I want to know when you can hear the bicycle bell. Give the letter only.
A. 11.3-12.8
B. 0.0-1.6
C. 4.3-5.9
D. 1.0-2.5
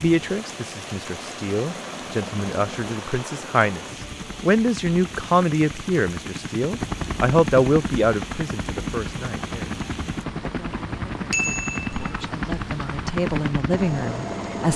A.